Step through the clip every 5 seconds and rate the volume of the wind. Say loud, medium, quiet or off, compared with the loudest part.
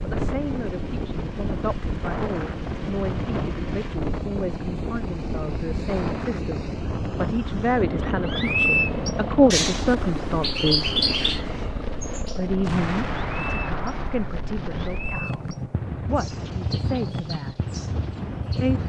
loud, loud, medium, loud.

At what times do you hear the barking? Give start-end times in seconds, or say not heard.
not heard.